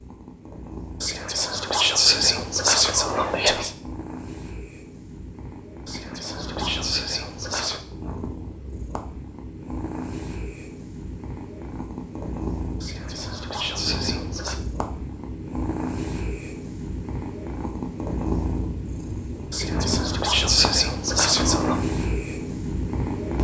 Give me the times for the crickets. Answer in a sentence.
You can't hear the crickets here.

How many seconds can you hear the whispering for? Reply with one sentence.
The whispering can be heard for 9 seconds in total.